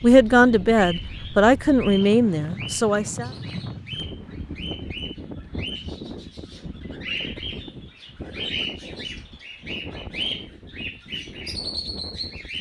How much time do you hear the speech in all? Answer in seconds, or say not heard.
3 s.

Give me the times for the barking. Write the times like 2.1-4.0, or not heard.
not heard.